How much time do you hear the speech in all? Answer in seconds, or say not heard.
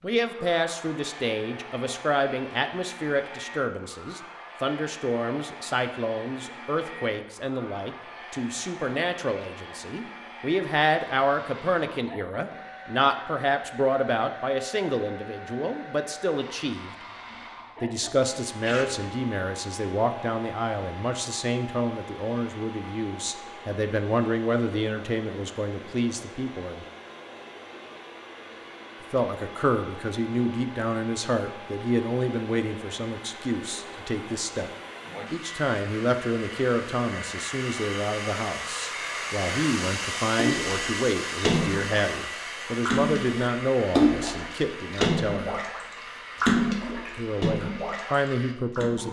44 s.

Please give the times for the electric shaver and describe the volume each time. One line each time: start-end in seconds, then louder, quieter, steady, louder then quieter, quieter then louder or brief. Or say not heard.
not heard.